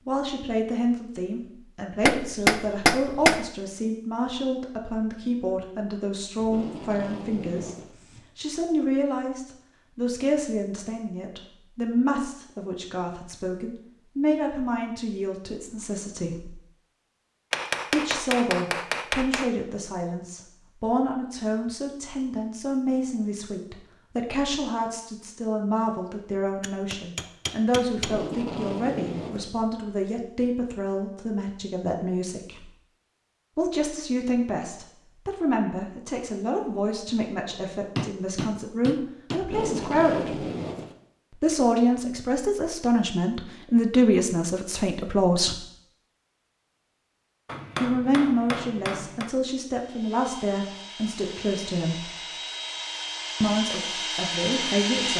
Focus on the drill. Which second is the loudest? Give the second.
55 s.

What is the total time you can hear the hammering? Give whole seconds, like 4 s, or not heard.
9 s.